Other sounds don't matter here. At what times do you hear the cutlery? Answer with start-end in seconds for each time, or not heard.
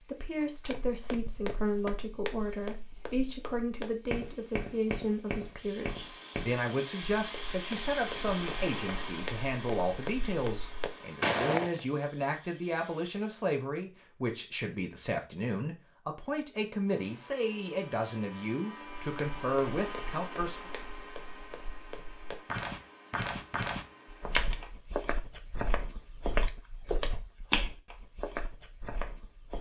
not heard.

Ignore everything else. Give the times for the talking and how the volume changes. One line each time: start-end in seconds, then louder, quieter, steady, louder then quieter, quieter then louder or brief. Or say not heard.
0.0-20.7 steady.